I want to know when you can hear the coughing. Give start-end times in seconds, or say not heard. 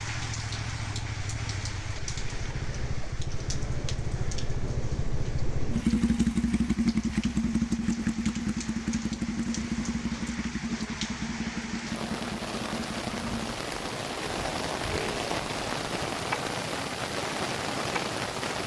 not heard.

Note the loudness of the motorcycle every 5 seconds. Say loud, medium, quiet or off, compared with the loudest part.
medium, loud, medium, medium.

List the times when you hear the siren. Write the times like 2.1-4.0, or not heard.
not heard.